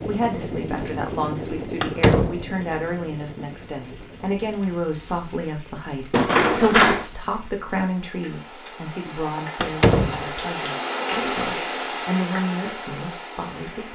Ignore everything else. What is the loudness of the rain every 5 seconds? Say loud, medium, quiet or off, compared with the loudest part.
quiet, medium, loud.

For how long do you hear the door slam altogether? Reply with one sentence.
You can hear the door slam for 2 seconds altogether.